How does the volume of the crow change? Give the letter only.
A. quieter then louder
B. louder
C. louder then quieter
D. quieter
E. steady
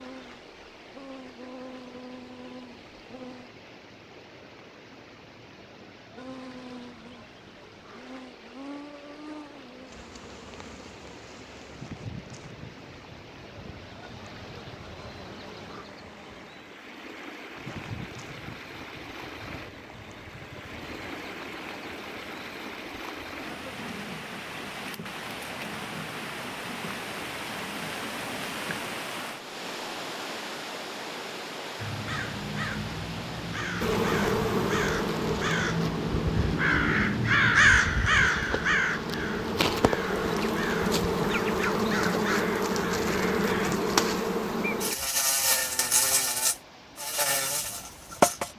C.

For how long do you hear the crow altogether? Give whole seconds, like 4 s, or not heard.
12 s.